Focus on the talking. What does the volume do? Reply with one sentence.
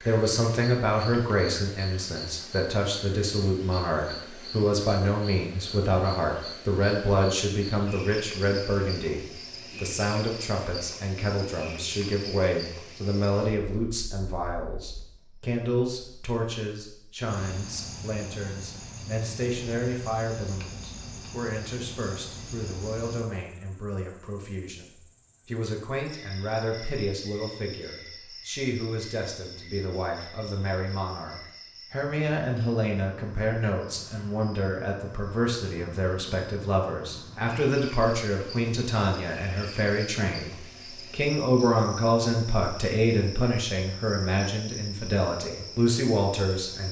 The volume of the talking goes down, then up.